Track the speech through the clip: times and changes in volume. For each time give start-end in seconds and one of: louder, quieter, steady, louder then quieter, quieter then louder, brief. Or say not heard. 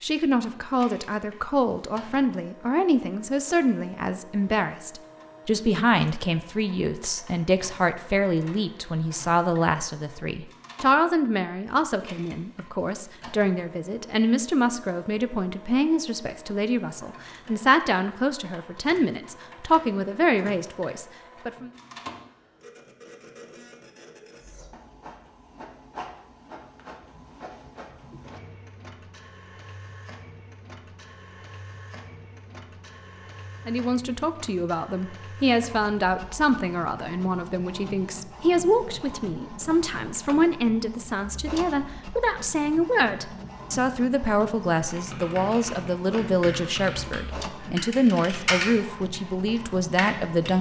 0.0-21.7 steady
33.6-50.5 steady.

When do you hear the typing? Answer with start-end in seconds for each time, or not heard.
44.9-48.8, 49.5-50.5.